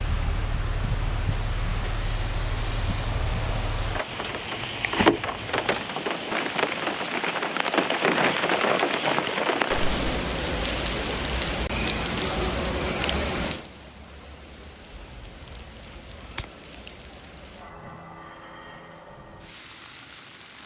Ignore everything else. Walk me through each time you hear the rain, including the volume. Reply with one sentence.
You can hear the rain from 0.0 to 20.6 s, getting louder then quieter.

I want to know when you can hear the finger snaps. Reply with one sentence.
You can't hear the finger snaps here.